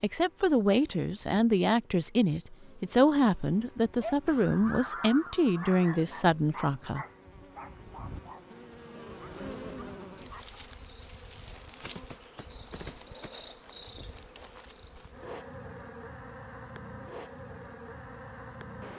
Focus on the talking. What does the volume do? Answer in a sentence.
The volume of the talking stays about the same.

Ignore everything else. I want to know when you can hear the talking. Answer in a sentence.
You can hear the talking from 0.0 to 7.0 s.